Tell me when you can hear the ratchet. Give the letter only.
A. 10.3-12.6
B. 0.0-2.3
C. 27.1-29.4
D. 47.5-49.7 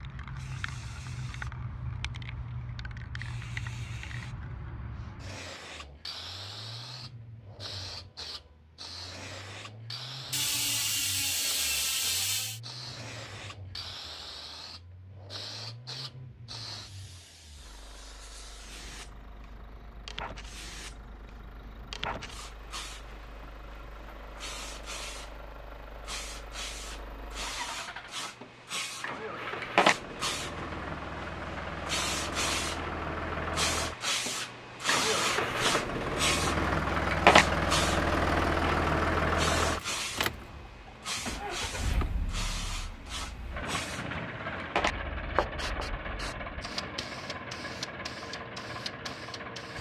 A.